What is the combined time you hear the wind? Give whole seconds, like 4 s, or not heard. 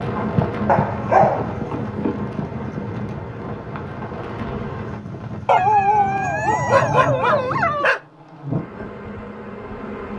8 s.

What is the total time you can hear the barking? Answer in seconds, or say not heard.
4 s.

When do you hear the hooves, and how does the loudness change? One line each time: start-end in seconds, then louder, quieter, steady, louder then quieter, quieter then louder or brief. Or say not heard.
not heard.